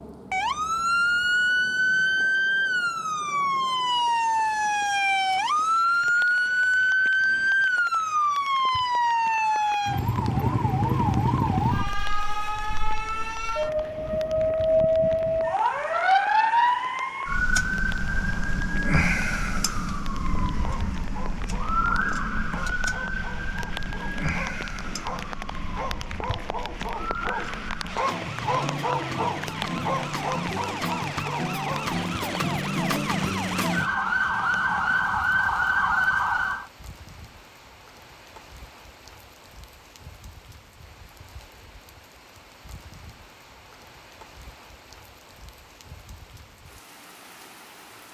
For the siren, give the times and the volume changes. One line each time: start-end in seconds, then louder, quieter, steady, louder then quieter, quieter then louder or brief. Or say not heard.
0.3-36.6 quieter then louder.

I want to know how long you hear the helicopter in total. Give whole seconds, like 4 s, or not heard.
not heard.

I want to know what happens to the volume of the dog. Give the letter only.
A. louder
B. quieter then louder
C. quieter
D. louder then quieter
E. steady
A.